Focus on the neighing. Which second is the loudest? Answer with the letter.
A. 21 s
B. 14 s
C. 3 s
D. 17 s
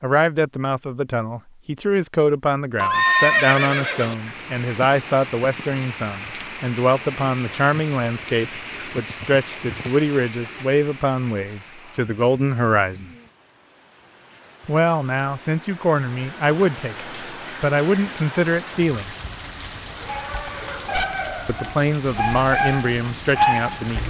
C.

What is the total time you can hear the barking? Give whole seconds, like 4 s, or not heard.
4 s.